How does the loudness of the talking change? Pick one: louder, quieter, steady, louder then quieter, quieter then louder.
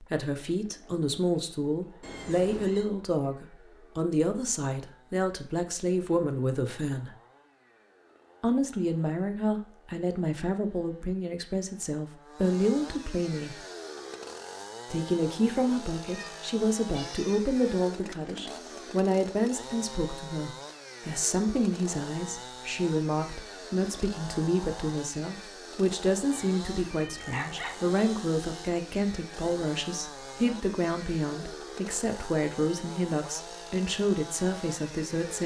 steady.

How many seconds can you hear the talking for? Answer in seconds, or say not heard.
33 s.